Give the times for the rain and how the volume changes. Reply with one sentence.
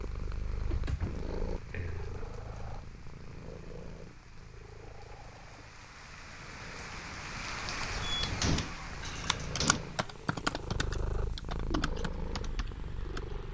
You can hear the rain from 0.0 to 13.4 s, getting louder then quieter.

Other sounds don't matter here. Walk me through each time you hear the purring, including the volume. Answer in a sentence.
You can hear the purring from 0.0 to 13.4 s, getting quieter then louder.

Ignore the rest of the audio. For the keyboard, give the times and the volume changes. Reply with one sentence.
The keyboard can be heard from 7.9 to 13.3 s, getting louder then quieter.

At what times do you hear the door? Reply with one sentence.
The door can be heard from 0.6 to 2.2 s and from 8.2 to 9.8 s.